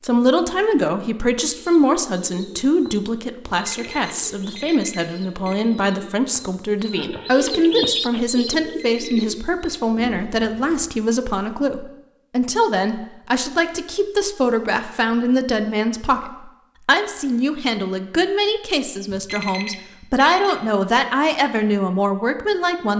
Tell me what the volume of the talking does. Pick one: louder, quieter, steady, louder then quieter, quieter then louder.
steady.